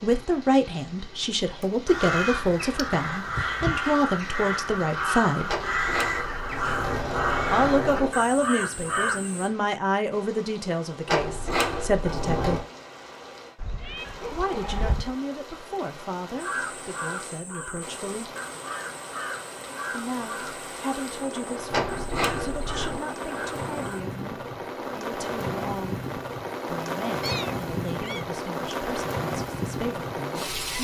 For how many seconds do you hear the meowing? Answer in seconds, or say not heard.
4 s.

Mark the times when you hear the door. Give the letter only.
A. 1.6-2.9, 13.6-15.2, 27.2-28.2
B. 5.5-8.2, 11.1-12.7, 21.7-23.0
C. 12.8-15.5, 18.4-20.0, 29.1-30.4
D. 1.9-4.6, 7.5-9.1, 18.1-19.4
B.